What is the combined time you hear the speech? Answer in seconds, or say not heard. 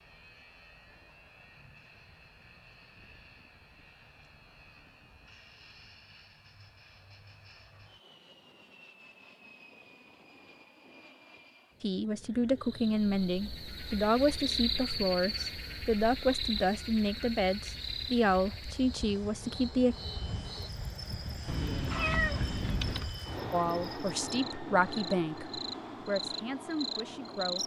12 s.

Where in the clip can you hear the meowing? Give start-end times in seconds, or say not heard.
21.4-23.1.